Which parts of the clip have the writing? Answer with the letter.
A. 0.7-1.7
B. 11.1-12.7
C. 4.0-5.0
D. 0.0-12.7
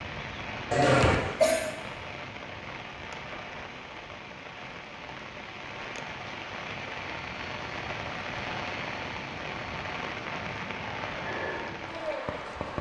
B.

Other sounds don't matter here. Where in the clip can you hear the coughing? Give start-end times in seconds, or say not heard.
0.7-1.7.